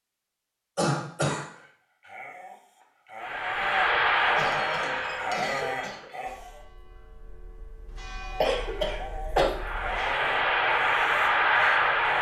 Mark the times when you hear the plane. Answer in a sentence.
You can hear the plane from 3.2 to 6.1 s and from 9.5 to 12.1 s.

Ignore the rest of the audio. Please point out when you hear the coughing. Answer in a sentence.
The coughing can be heard from 0.8 to 1.4 s, from 4.3 to 6.1 s and from 8.4 to 9.5 s.